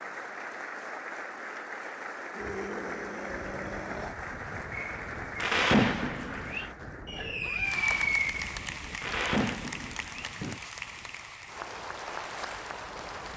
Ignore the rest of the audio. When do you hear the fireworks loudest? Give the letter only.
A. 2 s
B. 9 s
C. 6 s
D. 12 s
C.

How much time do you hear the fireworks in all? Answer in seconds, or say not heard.
6 s.